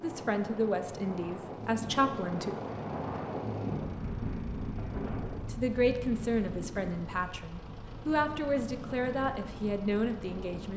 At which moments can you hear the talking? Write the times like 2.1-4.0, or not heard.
0.0-2.5, 5.5-10.7.